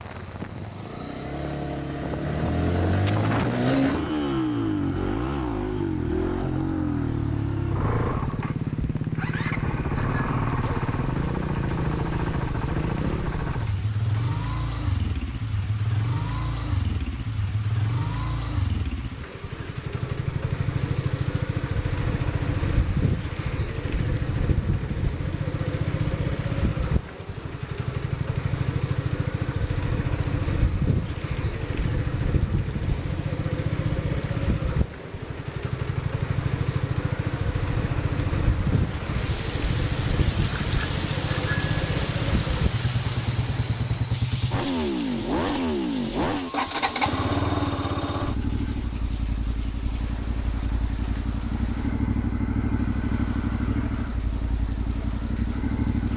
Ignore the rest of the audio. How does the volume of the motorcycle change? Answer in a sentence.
The volume of the motorcycle stays about the same.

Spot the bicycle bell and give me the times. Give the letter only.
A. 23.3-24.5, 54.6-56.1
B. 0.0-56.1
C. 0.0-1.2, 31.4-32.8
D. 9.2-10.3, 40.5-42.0
D.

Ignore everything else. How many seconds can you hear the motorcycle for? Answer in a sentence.
You can hear the motorcycle for 56 seconds altogether.